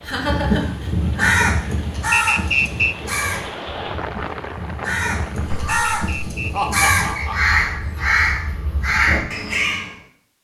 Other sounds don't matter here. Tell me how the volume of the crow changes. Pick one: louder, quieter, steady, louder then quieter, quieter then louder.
quieter then louder.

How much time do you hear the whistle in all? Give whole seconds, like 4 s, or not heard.
3 s.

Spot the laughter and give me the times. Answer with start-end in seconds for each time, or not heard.
0.0-1.4, 5.3-7.8.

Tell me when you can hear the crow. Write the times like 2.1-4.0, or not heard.
0.0-9.9.